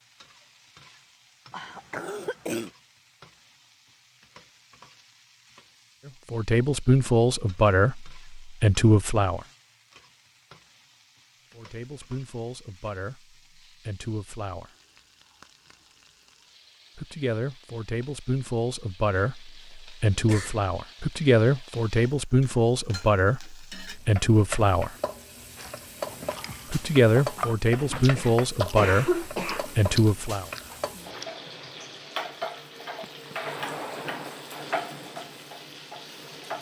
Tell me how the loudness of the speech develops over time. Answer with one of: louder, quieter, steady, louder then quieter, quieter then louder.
quieter then louder.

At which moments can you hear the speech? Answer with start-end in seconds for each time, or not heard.
6.0-9.4, 11.6-14.7, 16.9-24.9, 26.7-30.5.